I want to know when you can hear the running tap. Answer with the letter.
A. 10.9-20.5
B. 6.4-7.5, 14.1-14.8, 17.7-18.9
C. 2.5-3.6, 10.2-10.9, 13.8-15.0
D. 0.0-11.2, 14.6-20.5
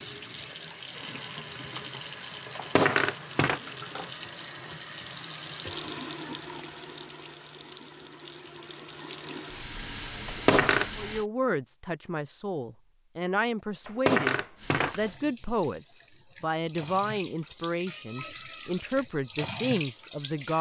D.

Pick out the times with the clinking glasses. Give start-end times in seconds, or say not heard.
2.5-3.6, 10.2-10.9, 13.8-15.0.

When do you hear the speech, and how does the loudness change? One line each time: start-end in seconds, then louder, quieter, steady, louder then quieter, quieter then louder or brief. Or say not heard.
10.9-20.5 steady.